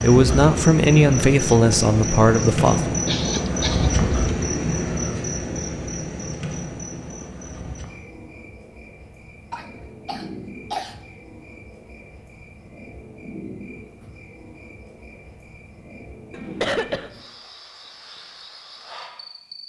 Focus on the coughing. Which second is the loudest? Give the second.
17 s.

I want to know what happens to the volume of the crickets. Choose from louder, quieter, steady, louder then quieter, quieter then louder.
quieter.